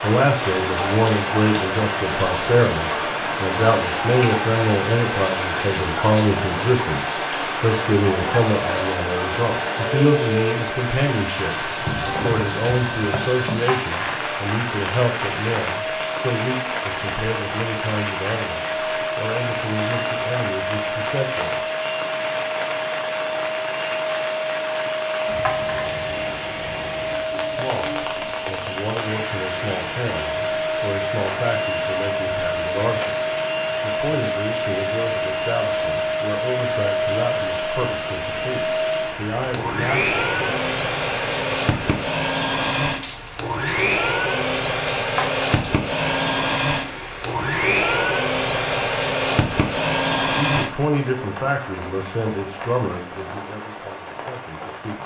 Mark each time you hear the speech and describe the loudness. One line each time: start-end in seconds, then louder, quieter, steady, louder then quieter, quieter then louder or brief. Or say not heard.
0.0-21.6 quieter
27.4-40.6 steady
50.4-55.0 quieter.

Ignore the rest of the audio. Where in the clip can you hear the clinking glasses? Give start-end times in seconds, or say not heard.
13.7-14.1, 25.4-25.9, 45.1-45.6.